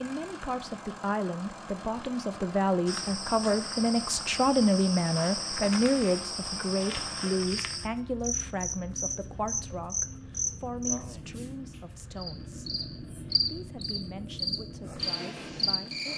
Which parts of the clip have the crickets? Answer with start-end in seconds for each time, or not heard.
2.9-16.1.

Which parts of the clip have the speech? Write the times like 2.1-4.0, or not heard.
0.0-16.1.